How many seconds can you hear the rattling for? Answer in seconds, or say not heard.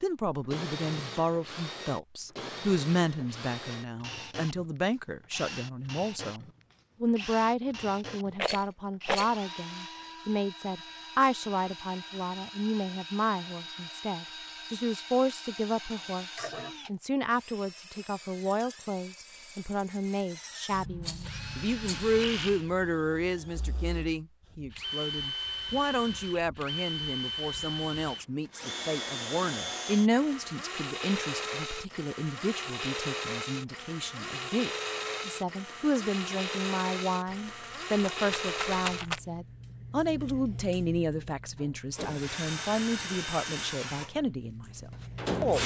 4 s.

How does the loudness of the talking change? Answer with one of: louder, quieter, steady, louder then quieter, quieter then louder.
steady.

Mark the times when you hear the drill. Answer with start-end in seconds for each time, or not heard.
0.0-45.6.